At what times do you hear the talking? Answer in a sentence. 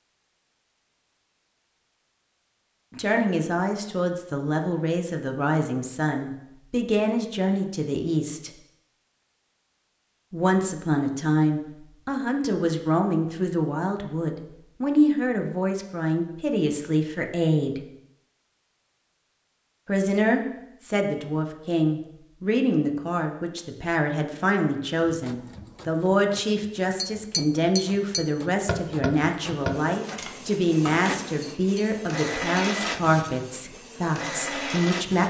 You can hear the talking from 2.9 to 8.5 s, from 10.3 to 17.8 s and from 19.9 to 35.2 s.